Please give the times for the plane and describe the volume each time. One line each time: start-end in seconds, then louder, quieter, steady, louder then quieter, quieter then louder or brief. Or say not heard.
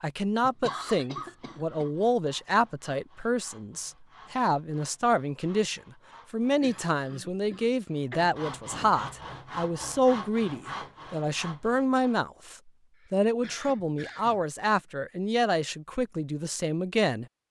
not heard.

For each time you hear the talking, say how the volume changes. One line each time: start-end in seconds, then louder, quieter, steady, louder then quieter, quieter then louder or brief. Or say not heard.
0.0-17.2 steady.